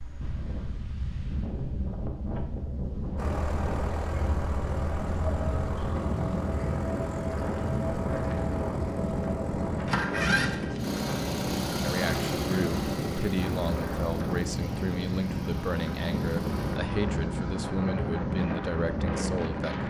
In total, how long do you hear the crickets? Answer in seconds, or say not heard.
not heard.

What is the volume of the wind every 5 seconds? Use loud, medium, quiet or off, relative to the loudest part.
medium, loud, loud, loud.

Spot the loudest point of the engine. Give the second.
10 s.